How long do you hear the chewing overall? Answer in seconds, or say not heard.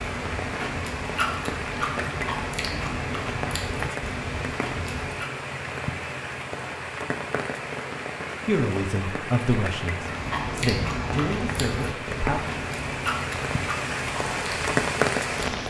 11 s.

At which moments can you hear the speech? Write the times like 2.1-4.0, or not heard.
8.4-12.4.